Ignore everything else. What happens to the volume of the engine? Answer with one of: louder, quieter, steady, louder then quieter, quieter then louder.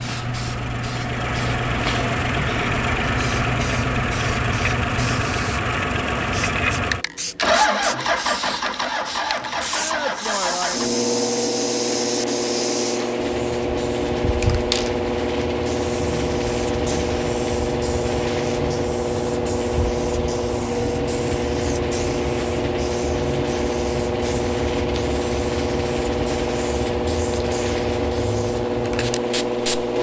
steady.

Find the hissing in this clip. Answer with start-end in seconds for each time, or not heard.
0.0-29.9.